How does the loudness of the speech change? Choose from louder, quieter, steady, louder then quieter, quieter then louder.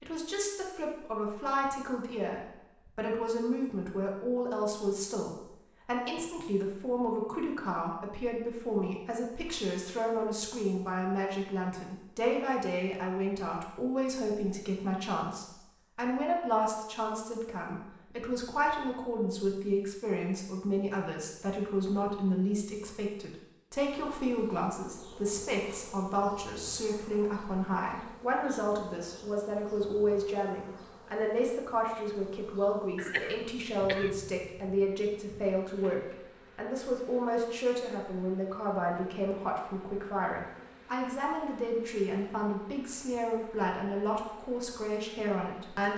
steady.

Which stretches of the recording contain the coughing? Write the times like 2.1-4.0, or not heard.
33.0-34.1.